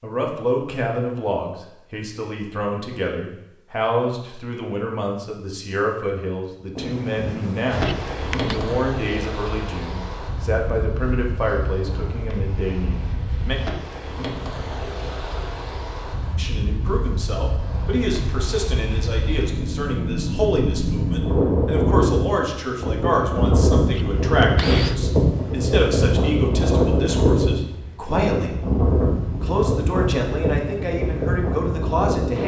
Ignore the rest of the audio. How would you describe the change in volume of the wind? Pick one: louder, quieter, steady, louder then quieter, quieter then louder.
louder.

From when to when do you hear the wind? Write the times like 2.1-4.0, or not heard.
6.8-32.4.